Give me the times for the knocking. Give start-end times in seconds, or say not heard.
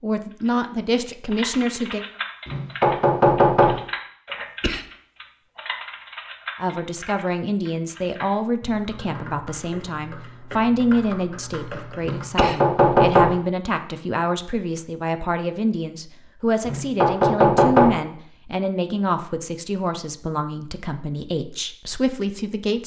2.5-3.8, 12.1-13.3, 16.6-17.9.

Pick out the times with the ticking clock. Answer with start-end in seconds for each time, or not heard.
not heard.